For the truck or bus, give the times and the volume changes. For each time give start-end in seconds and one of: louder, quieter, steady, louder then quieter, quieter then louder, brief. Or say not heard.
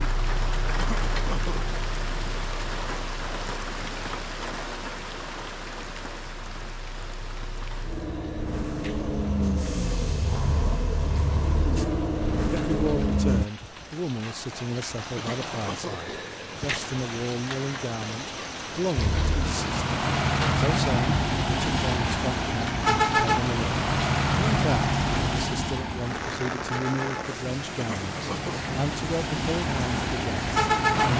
0.0-13.4 quieter then louder
18.9-31.1 quieter then louder.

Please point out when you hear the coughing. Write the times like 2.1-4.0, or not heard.
0.8-1.6, 15.2-16.2, 27.8-28.7.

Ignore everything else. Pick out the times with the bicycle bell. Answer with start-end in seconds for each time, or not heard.
not heard.